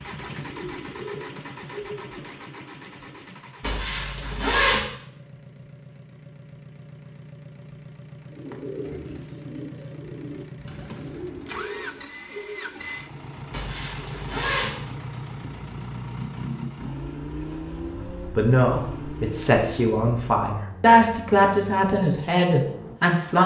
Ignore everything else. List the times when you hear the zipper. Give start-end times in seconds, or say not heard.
3.6-4.8, 13.5-14.7.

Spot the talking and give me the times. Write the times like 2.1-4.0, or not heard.
17.9-23.4.